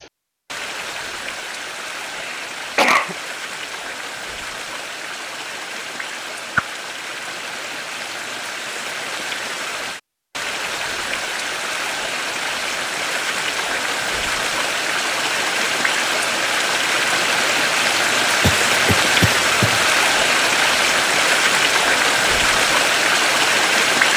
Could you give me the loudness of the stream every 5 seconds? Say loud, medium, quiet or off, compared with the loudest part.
quiet, quiet, medium, loud, loud.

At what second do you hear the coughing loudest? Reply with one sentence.
The loudest moment of the coughing is at 3 seconds.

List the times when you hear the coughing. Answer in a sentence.
The coughing can be heard from 2.1 to 3.1 s and from 18.4 to 19.9 s.